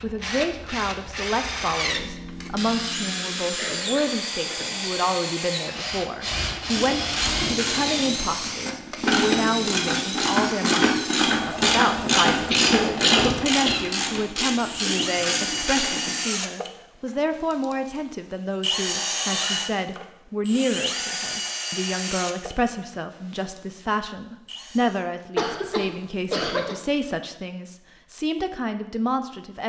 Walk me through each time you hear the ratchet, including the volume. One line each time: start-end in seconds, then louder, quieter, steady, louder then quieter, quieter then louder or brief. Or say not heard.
6.5-16.1 louder then quieter.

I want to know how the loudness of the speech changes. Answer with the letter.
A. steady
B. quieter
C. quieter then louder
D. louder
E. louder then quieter
A.